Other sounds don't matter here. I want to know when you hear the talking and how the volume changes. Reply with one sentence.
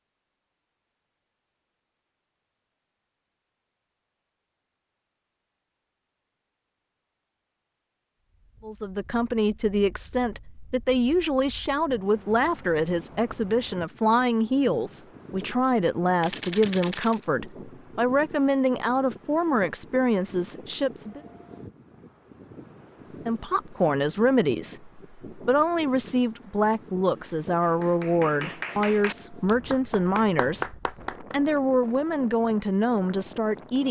The talking can be heard from 8.6 to 21.2 s, at a steady volume; and from 23.2 to 33.8 s, at a steady volume.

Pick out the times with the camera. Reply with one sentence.
The camera can be heard from 16.2 to 17.2 s.